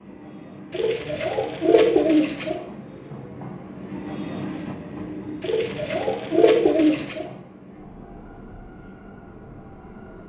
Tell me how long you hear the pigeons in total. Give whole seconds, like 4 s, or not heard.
4 s.